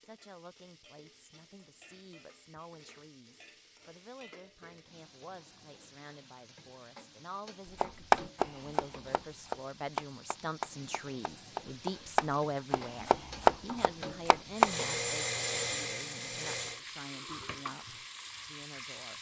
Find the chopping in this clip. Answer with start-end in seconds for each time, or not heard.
7.8-14.7.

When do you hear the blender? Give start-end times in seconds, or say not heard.
14.6-16.8.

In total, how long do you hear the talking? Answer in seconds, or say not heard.
19 s.